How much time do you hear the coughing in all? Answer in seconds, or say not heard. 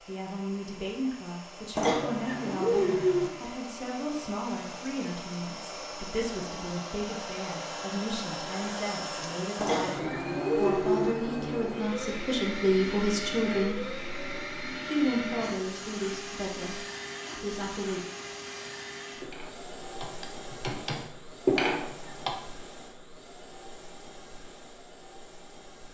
4 s.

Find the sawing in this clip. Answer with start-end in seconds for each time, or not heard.
not heard.